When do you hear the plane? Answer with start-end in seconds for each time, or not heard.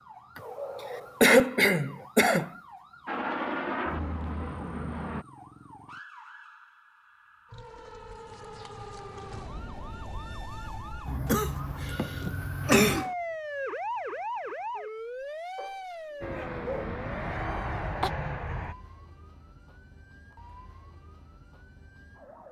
3.0-5.2, 16.2-18.8.